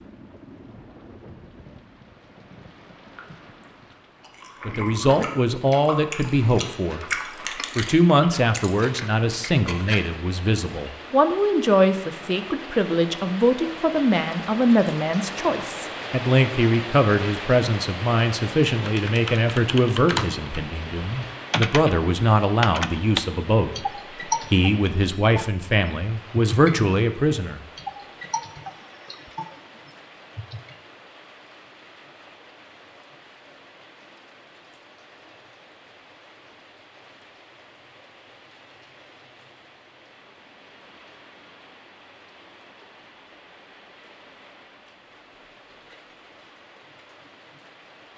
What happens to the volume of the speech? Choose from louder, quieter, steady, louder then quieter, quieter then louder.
steady.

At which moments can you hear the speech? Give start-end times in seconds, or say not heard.
4.7-27.6.